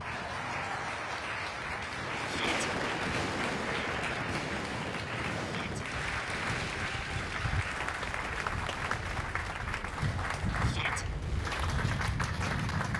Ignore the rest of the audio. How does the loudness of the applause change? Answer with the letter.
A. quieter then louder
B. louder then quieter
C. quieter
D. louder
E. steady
E.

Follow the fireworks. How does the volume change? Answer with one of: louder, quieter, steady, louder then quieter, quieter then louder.
quieter.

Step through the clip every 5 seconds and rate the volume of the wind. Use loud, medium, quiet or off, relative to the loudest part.
medium, medium, loud.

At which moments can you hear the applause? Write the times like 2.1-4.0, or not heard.
0.0-12.9.